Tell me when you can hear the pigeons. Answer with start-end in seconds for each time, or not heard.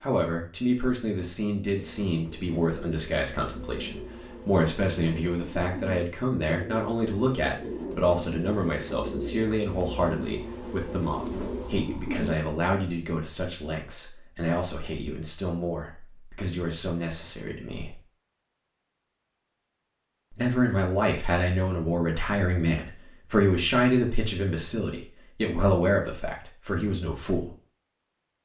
1.7-12.3.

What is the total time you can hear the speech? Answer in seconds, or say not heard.
25 s.